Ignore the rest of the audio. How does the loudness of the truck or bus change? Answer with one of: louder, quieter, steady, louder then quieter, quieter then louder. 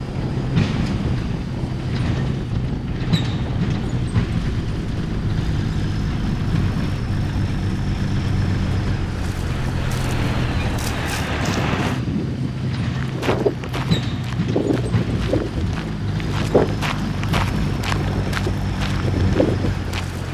steady.